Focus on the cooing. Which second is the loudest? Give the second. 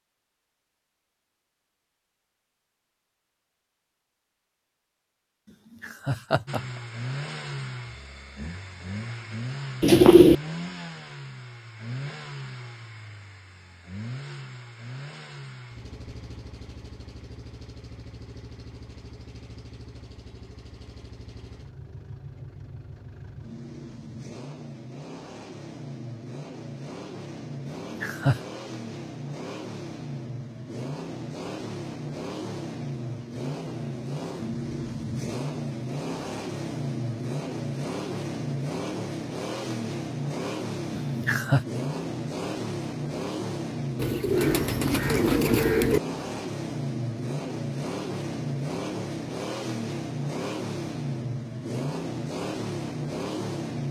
10 s.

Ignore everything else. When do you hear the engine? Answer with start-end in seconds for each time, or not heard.
6.5-53.8.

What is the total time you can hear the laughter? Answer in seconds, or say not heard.
2 s.